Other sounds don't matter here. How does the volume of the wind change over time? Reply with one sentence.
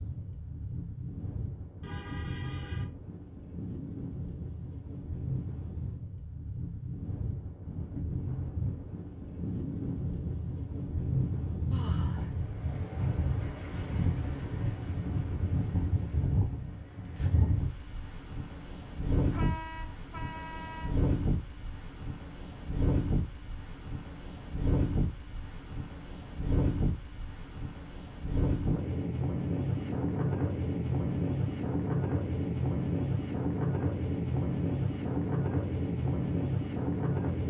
The volume of the wind goes up.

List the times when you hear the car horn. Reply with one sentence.
The car horn can be heard from 1.8 to 2.9 s and from 19.3 to 20.9 s.